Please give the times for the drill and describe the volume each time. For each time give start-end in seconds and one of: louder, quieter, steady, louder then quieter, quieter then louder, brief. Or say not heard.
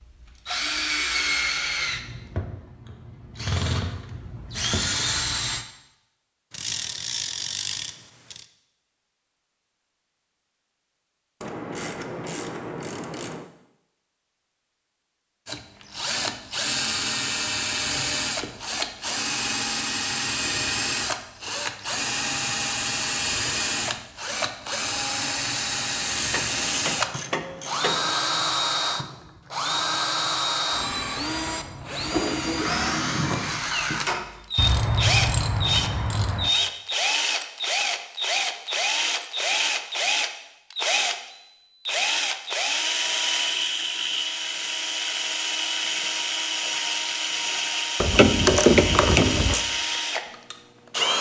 0.0-5.7 quieter then louder
15.4-51.1 steady.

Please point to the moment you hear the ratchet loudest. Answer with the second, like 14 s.
49 s.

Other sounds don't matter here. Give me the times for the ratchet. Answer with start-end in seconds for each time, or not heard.
6.5-8.4, 11.4-13.4, 26.1-28.4, 34.5-36.5, 48.0-49.6.